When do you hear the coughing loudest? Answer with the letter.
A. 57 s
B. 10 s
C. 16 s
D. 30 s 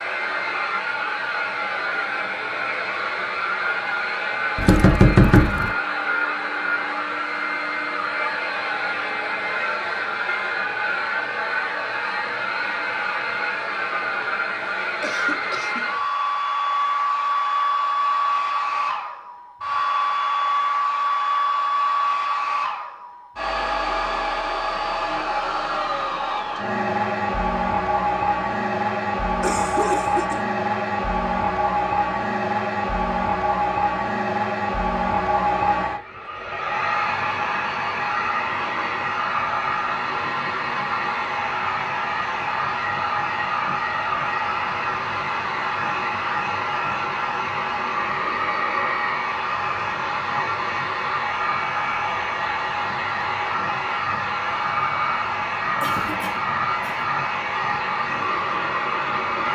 D.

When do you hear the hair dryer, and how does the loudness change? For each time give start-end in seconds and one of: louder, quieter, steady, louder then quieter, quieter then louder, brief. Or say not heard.
0.0-59.5 steady.